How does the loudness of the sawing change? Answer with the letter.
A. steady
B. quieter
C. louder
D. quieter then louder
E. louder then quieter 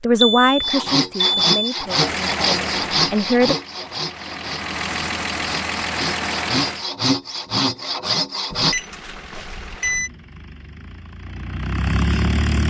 D.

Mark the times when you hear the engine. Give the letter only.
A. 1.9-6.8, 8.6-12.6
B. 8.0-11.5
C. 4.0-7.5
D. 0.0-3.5
A.